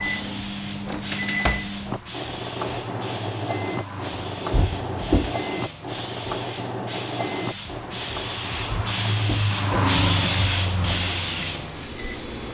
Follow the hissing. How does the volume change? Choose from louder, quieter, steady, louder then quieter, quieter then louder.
louder.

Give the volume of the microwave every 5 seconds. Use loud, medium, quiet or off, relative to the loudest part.
loud, loud, medium.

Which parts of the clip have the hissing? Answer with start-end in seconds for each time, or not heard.
0.0-12.4.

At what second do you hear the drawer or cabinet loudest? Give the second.
5 s.